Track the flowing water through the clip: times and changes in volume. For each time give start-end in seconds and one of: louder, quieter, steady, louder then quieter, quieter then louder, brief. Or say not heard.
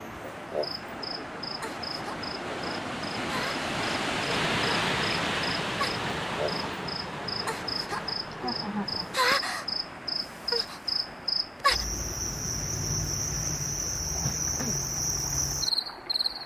0.0-16.4 louder then quieter.